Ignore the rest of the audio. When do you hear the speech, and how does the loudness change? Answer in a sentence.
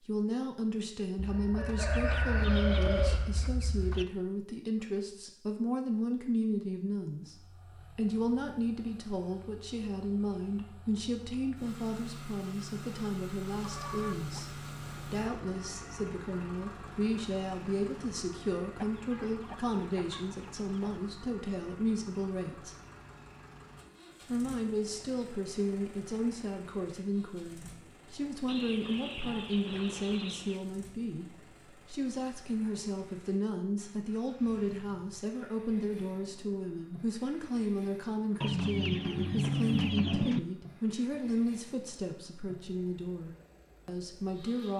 You can hear the speech from 0.1 to 22.8 s, at a steady volume; and from 24.2 to 44.7 s, at a steady volume.